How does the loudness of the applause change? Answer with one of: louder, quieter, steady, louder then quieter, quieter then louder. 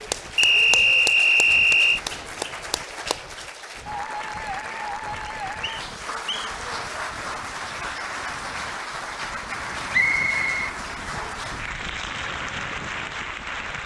steady.